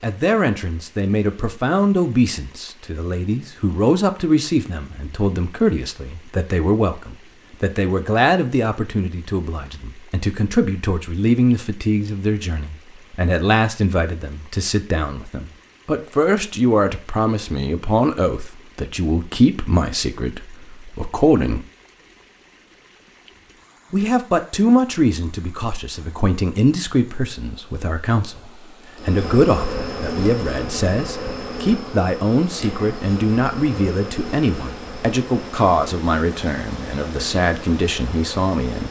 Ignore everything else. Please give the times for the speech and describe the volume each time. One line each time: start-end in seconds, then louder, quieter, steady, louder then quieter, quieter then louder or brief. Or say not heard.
0.0-21.6 steady
23.9-38.8 steady.